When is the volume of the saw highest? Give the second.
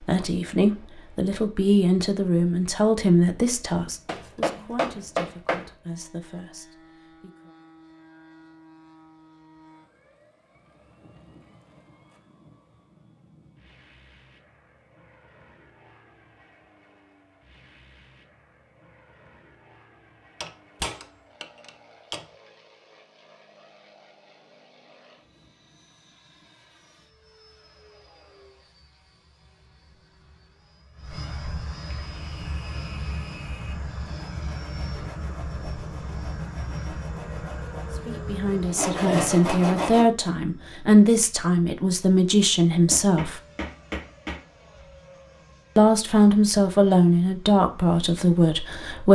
39 s.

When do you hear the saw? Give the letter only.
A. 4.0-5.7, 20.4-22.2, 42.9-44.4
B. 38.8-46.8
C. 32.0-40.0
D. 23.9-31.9
C.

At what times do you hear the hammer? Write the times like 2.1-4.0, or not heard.
4.0-5.7, 20.4-22.2, 42.9-44.4.